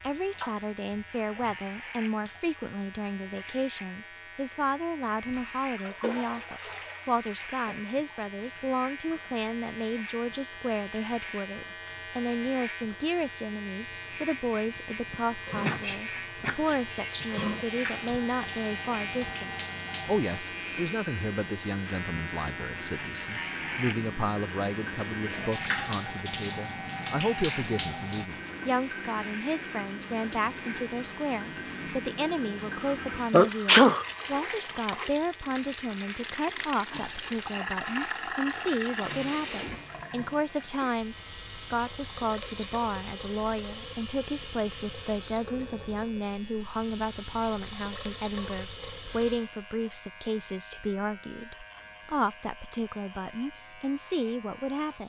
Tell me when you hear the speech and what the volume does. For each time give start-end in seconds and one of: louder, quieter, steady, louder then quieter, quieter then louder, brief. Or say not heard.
0.0-55.0 steady.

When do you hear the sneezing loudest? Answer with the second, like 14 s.
34 s.